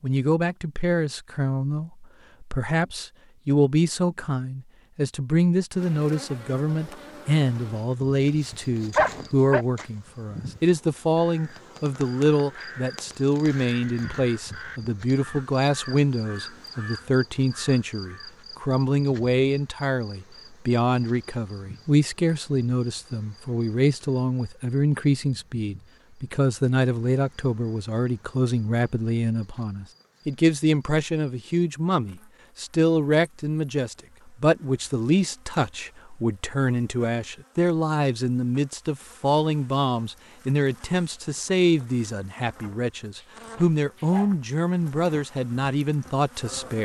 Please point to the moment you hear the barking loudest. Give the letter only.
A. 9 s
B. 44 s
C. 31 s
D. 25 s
A.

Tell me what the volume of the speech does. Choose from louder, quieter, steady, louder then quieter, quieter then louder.
steady.